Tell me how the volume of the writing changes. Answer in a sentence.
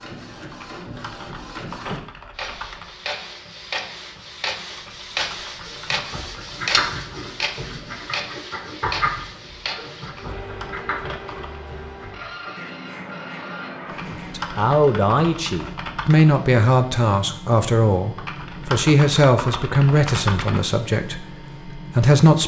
The volume of the writing goes down.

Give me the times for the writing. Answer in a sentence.
The writing can be heard from 5.6 to 14.6 s.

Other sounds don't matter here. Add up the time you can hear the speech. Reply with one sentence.
The speech can be heard for 8 seconds in total.